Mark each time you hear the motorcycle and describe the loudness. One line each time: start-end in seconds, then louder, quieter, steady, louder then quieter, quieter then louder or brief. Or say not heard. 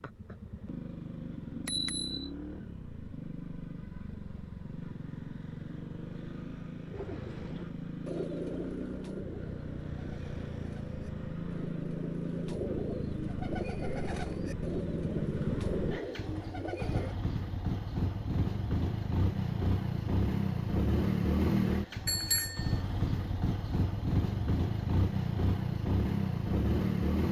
0.0-27.2 louder.